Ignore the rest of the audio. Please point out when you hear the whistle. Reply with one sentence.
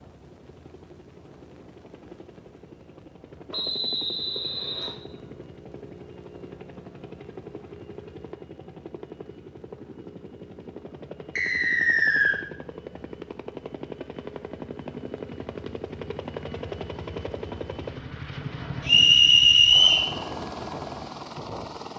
You can hear the whistle from 3.5 to 5.0 s, from 11.3 to 12.3 s and from 18.9 to 20.1 s.